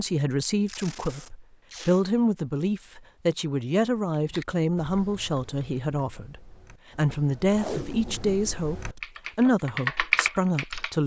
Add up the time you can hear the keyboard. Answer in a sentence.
You can hear the keyboard for 7 seconds altogether.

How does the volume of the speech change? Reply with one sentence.
The volume of the speech stays about the same.